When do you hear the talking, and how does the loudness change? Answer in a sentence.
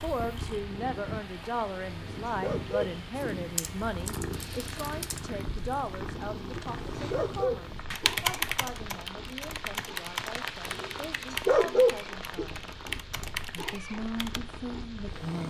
The talking can be heard from 0.0 to 12.8 s, getting quieter; and briefly from 13.6 to 15.4 s.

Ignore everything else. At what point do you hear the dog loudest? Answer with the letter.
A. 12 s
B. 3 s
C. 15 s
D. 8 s
A.